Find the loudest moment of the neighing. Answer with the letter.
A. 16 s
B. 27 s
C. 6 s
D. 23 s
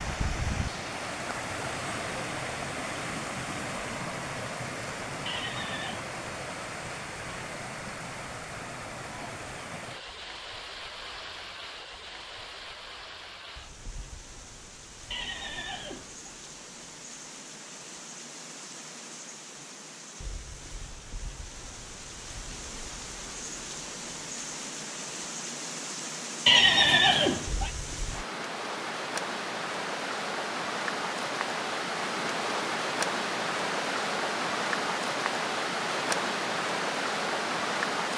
B.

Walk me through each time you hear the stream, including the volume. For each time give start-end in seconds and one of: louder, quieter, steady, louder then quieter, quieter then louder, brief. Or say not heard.
0.0-38.1 quieter then louder.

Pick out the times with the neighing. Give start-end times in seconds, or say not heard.
5.2-6.0, 15.1-16.4, 26.4-27.7.